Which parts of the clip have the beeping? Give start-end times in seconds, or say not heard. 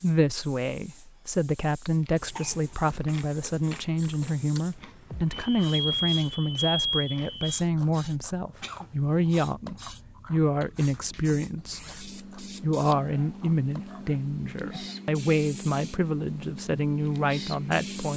5.1-7.6.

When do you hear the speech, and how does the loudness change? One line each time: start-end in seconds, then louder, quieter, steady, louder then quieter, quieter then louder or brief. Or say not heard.
0.0-18.1 steady.